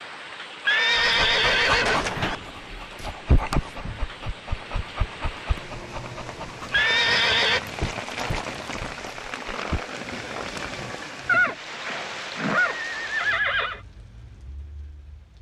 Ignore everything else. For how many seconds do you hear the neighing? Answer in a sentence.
The neighing can be heard for 5 seconds in total.